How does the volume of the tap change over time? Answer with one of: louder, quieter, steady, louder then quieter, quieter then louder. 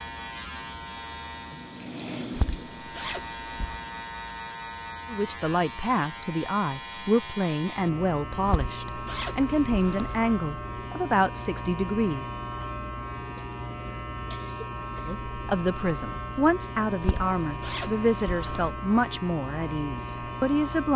louder then quieter.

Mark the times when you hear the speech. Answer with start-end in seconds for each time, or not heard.
5.1-12.2, 15.1-20.9.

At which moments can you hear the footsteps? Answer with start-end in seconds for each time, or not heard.
not heard.